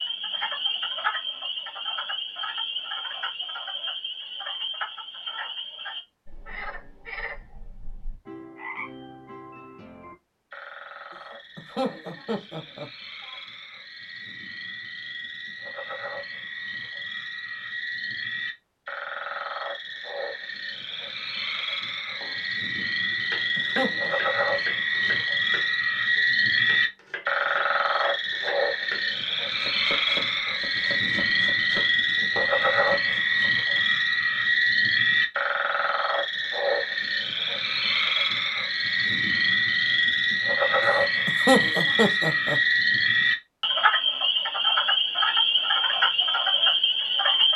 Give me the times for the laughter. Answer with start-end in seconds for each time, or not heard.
11.6-13.3, 23.6-24.1, 41.2-42.6.